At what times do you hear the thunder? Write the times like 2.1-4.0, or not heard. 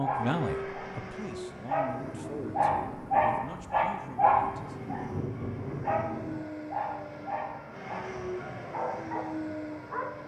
1.9-6.4.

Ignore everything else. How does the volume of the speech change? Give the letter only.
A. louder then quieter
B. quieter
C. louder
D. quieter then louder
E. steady
B.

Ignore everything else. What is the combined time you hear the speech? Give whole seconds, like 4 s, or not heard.
5 s.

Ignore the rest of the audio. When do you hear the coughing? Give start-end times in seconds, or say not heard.
not heard.